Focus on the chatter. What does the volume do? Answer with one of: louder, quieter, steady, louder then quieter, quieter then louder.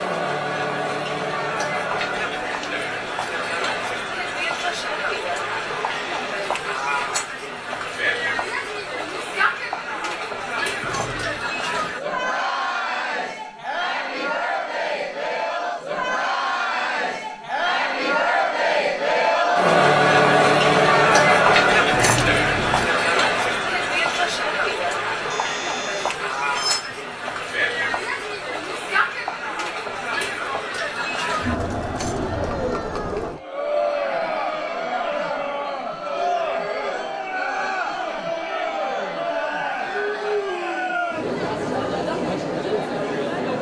louder then quieter.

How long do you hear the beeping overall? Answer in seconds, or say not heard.
2 s.